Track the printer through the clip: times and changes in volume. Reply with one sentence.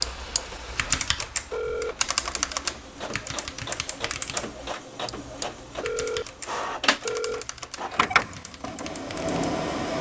You can hear the printer from 0.0 to 9.9 s, getting louder.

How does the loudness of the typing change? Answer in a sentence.
The loudness of the typing goes down.